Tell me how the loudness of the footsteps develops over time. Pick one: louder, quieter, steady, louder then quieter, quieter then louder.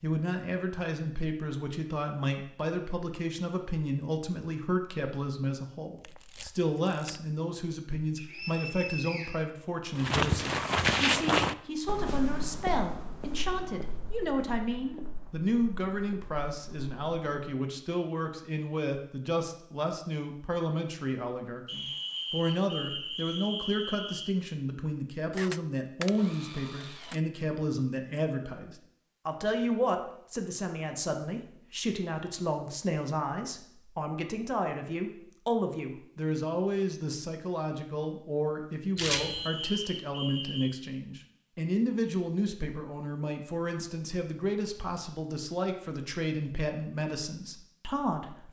quieter.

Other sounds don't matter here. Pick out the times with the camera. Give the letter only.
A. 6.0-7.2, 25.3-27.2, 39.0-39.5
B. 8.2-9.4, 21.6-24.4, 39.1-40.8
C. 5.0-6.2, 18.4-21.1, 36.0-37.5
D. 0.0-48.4
A.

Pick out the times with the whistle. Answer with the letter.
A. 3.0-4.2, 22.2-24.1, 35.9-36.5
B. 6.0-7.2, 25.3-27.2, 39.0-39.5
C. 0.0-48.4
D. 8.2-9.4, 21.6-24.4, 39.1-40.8
D.